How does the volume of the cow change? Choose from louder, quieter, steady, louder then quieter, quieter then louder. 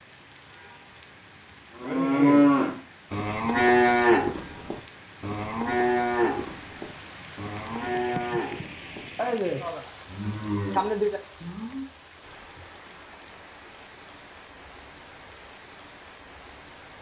quieter.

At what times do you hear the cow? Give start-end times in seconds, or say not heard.
1.8-11.8.